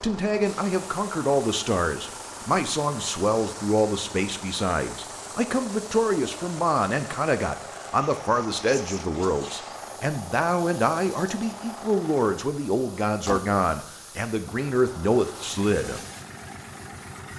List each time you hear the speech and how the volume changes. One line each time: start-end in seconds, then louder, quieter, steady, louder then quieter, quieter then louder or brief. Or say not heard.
0.0-16.0 steady.